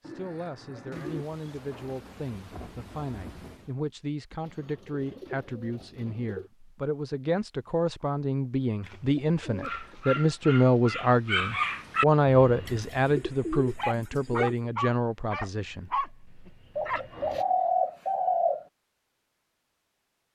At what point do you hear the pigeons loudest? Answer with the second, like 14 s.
18 s.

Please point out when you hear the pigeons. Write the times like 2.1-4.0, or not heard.
0.0-1.2, 4.4-6.5, 8.8-10.2, 12.7-14.7, 16.8-18.6.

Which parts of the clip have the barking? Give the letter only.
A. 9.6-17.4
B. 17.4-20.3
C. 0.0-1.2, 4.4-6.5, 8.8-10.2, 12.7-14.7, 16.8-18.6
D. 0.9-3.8
A.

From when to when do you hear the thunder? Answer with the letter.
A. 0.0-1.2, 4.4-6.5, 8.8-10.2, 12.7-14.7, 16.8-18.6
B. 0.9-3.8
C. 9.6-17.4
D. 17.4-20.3
B.